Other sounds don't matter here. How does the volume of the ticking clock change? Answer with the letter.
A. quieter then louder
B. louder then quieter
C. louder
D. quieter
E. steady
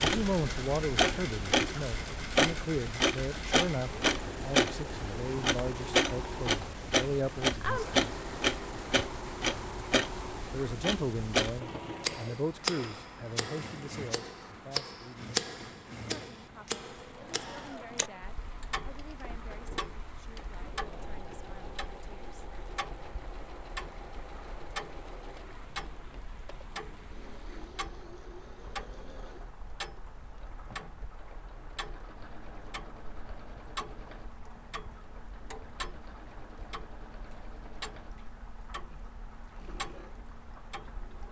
D.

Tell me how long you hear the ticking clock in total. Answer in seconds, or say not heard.
41 s.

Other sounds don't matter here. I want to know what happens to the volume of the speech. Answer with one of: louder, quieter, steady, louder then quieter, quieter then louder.
quieter.